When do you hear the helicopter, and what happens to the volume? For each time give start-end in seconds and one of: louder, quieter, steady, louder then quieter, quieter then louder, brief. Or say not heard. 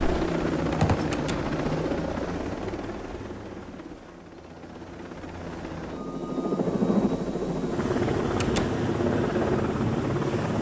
0.0-10.5 quieter then louder.